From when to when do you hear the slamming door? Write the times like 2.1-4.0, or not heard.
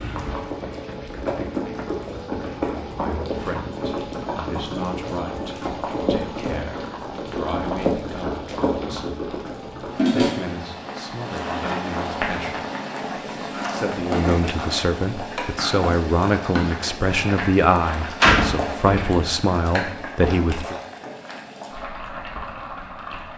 17.4-19.2.